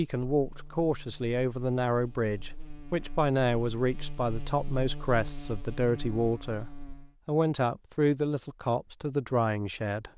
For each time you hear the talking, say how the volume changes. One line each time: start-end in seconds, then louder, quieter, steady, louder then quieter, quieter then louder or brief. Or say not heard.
0.0-10.1 steady.